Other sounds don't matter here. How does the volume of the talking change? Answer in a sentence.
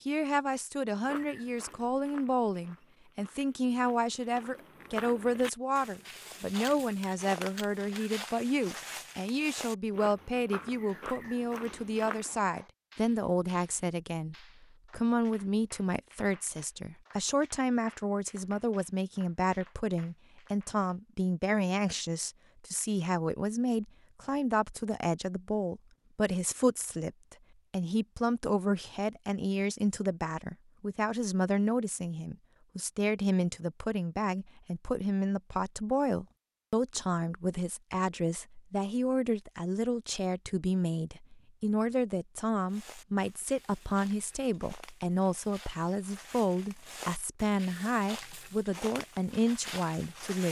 The volume of the talking stays about the same.